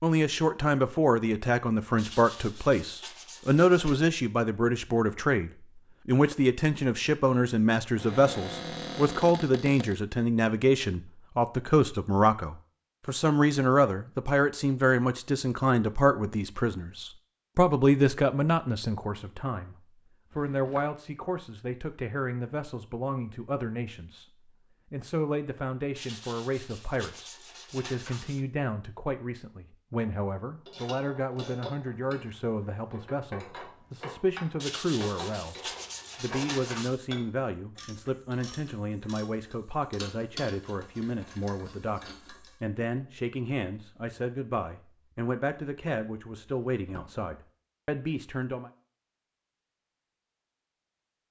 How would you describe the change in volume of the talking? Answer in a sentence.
The loudness of the talking goes down.